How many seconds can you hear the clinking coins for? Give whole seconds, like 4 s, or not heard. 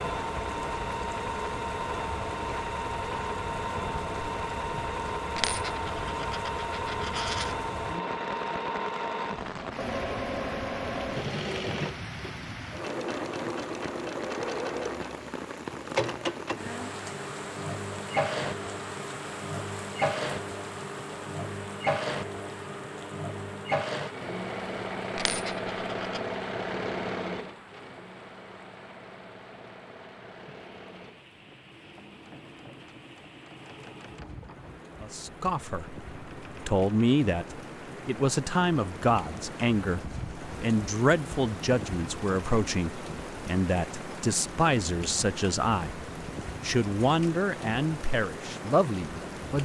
3 s.